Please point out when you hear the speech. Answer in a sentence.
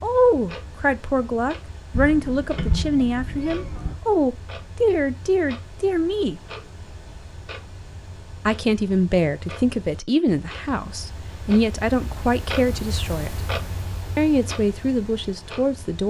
The speech can be heard from 0.0 to 6.4 s, from 8.4 to 13.4 s and from 14.2 to 16.0 s.